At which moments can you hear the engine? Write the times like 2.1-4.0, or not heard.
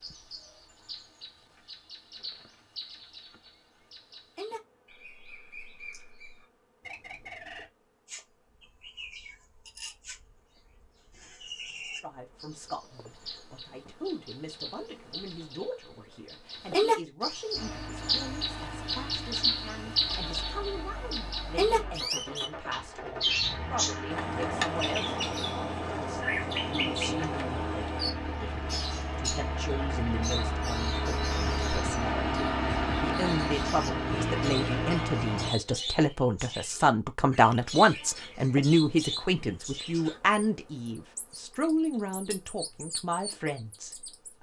17.5-35.5.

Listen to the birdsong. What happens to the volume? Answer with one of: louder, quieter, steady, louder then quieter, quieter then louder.
louder then quieter.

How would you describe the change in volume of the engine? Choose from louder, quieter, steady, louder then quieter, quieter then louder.
louder.